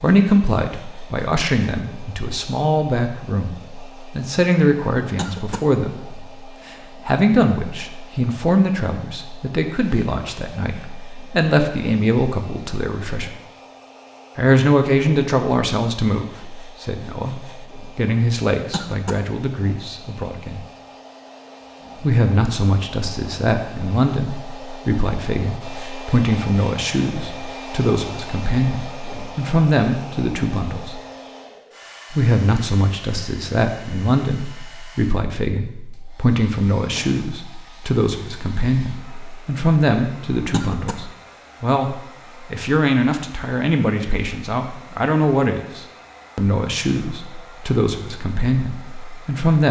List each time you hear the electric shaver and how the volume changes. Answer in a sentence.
The electric shaver can't be heard in this clip.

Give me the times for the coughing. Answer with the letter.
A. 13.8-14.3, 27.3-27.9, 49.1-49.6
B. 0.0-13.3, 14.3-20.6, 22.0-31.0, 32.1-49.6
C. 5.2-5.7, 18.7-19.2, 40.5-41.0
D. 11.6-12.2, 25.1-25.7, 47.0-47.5
C.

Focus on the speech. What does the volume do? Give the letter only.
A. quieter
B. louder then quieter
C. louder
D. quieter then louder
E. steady
E.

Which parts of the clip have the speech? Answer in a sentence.
The speech can be heard from 0.0 to 13.3 s, from 14.3 to 20.6 s, from 22.0 to 31.0 s and from 32.1 to 49.6 s.